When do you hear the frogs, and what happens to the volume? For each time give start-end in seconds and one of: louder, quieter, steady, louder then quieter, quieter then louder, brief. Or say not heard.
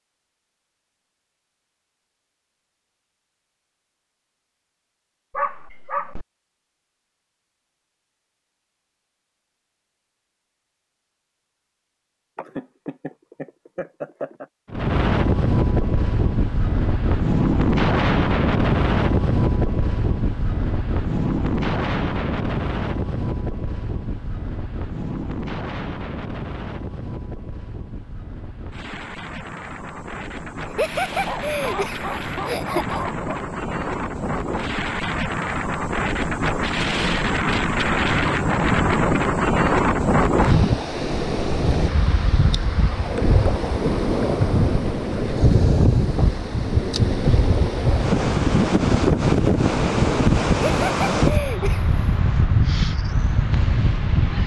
not heard.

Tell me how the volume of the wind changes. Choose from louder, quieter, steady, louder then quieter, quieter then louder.
quieter then louder.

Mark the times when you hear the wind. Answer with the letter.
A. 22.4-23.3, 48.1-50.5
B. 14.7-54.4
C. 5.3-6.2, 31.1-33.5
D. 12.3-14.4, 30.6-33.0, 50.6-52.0
B.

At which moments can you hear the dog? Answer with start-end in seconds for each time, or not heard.
5.3-6.2, 31.1-33.5.